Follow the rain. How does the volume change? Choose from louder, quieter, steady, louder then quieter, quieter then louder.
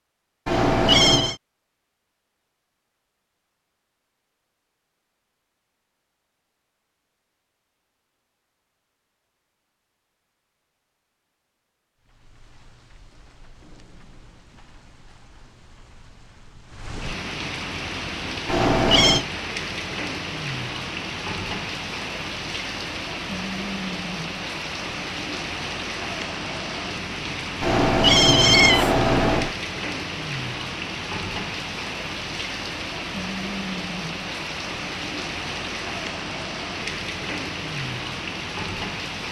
louder.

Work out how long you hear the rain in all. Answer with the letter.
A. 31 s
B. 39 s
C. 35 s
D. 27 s
D.